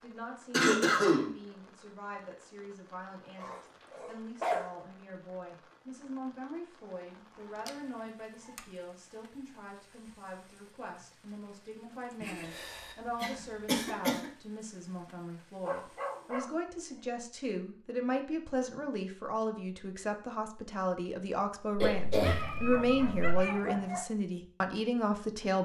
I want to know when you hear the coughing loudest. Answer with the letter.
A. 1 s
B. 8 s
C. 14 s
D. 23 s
A.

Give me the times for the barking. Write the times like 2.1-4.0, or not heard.
3.4-4.8, 7.5-8.7, 15.6-17.0, 22.2-24.1.